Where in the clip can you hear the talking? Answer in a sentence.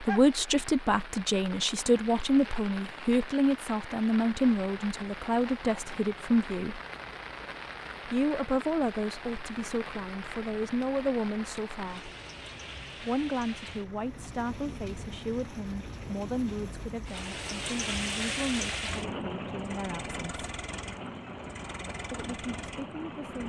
The talking can be heard from 0.0 to 6.8 s, from 8.1 to 12.1 s, from 13.0 to 20.4 s and from 22.1 to 23.4 s.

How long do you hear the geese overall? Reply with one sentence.
You can't hear the geese here.